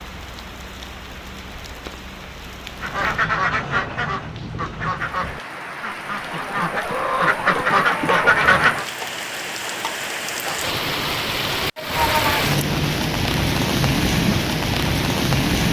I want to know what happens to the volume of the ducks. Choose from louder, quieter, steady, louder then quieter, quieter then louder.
quieter then louder.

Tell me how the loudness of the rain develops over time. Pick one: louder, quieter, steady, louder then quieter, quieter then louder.
louder.